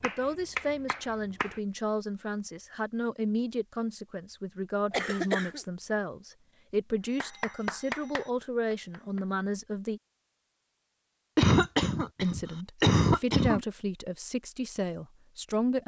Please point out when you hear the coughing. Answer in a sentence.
You can hear the coughing from 4.9 to 5.6 s and from 11.3 to 13.7 s.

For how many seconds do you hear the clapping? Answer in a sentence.
The clapping can be heard for 4 seconds in total.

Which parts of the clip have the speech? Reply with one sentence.
You can hear the speech from 0.0 to 10.0 s and from 12.2 to 15.8 s.